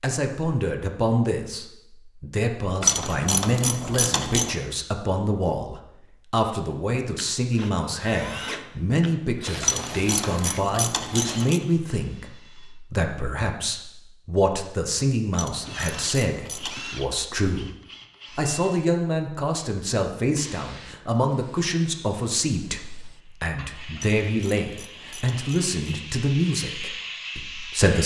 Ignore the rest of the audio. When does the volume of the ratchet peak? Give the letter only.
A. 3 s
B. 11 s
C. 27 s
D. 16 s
A.